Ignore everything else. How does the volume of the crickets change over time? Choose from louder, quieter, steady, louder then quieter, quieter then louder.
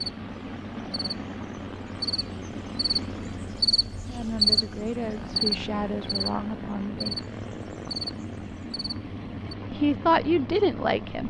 louder then quieter.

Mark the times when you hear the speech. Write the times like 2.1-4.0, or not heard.
4.0-7.2, 9.7-11.2.